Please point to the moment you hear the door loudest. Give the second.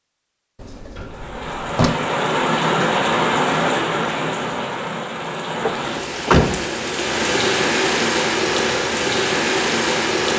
6 s.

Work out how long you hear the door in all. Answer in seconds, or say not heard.
2 s.